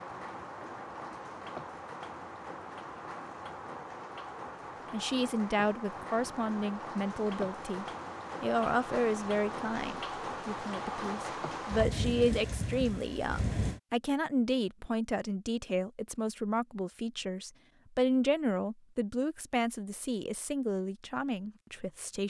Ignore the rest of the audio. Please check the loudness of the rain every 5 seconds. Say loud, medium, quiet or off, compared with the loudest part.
medium, loud, loud, off, off.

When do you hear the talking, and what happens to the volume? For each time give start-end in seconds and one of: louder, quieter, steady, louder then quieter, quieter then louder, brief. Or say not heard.
4.9-22.2 steady.